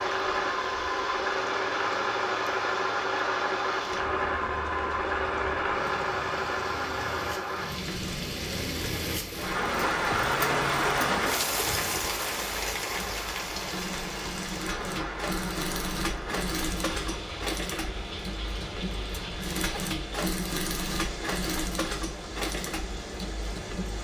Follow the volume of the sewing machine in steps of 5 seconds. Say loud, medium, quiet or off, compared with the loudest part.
loud, loud, medium, medium, medium.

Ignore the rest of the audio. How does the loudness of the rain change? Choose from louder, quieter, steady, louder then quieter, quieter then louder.
louder then quieter.